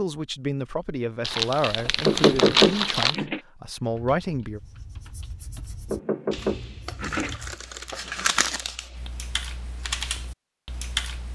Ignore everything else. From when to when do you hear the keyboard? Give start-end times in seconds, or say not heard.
3.9-11.3.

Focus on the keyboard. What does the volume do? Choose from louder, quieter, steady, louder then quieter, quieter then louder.
louder.